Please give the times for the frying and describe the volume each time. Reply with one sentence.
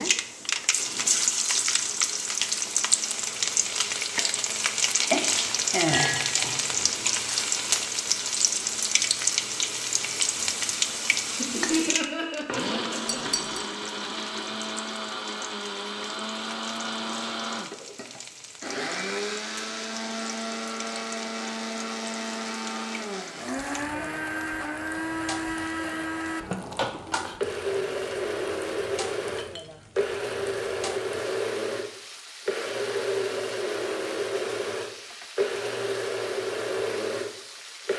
You can hear the frying from 0.0 to 37.9 s, getting quieter.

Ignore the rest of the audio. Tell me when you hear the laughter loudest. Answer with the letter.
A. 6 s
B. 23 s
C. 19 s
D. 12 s
D.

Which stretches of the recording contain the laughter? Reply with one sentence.
You can hear the laughter from 11.2 to 13.2 s.